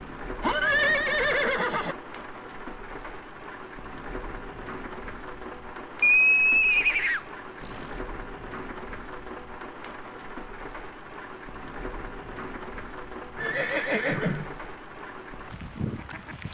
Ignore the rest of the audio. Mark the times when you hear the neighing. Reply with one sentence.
The neighing can be heard from 0.4 to 1.9 s, from 6.0 to 7.9 s and from 13.3 to 14.4 s.